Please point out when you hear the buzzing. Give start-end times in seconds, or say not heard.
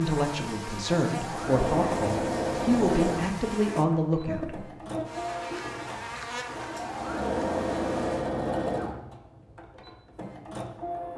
0.0-8.3.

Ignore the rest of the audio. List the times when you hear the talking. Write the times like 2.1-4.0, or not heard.
0.0-4.7.